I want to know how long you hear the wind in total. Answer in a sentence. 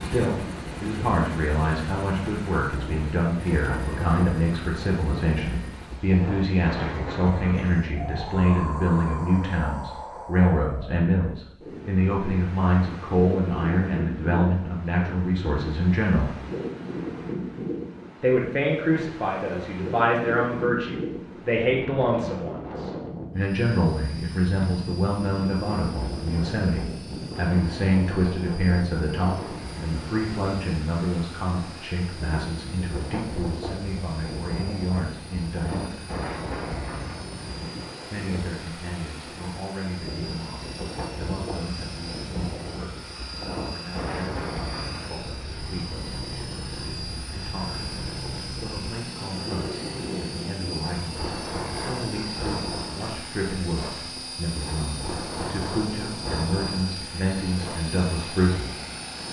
You can hear the wind for 59 seconds altogether.